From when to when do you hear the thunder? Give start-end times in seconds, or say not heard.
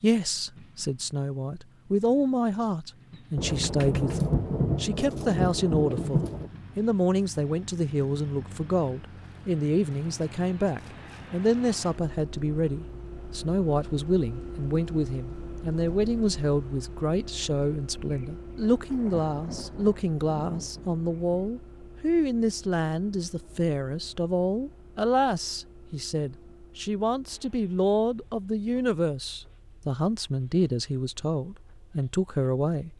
3.4-6.5, 18.0-21.5.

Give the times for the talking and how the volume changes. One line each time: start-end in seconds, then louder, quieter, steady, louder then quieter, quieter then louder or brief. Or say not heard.
0.0-32.9 steady.